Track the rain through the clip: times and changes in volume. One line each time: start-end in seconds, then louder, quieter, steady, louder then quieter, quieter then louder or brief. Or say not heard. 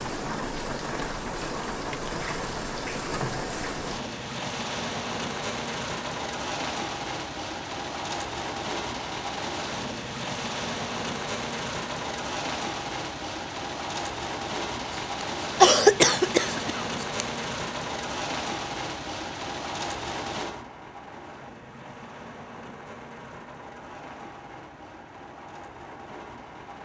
0.0-26.7 quieter.